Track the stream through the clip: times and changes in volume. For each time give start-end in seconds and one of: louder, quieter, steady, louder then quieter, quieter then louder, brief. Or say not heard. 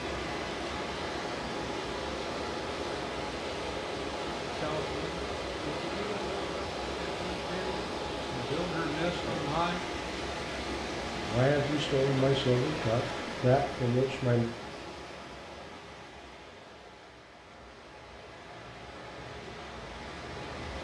0.0-20.7 quieter.